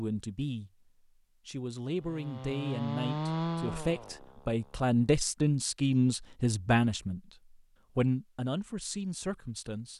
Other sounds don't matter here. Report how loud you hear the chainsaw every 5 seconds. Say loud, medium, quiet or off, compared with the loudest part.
loud, off.